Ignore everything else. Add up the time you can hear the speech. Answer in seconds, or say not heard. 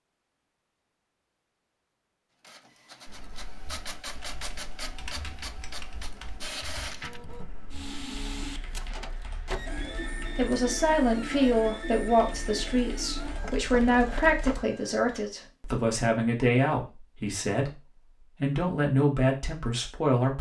10 s.